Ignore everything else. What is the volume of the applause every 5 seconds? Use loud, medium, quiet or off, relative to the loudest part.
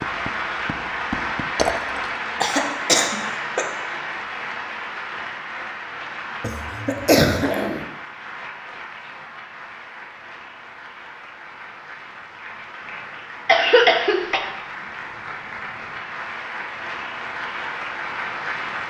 loud, medium, medium, loud.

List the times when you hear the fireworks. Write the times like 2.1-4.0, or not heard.
0.0-1.6.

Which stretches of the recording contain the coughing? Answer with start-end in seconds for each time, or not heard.
2.4-3.6, 6.4-7.8, 13.4-14.4.